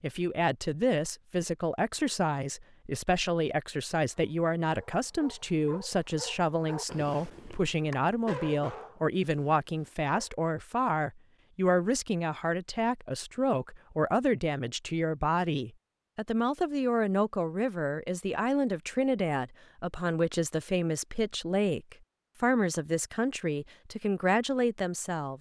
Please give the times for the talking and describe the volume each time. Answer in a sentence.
You can hear the talking from 0.0 to 25.3 s, at a steady volume.